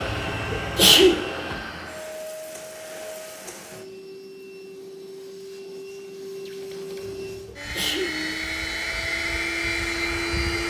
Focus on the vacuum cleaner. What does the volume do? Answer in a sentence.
The volume of the vacuum cleaner goes down, then up.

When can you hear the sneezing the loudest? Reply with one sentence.
The volume of the sneezing peaks at 1 second.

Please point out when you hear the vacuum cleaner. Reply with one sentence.
You can hear the vacuum cleaner from 0.0 to 10.6 s.